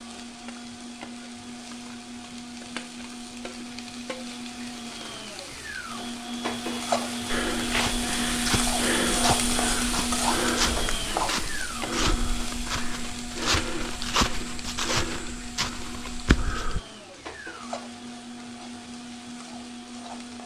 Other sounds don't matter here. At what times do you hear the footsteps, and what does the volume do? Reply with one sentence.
You can hear the footsteps from 7.2 to 16.8 s, at a steady volume.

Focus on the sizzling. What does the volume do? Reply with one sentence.
The loudness of the sizzling goes up, then down.